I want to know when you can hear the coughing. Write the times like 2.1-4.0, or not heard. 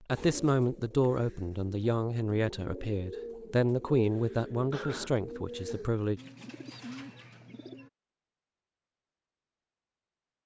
4.7-5.2.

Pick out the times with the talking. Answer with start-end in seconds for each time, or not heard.
0.1-6.2.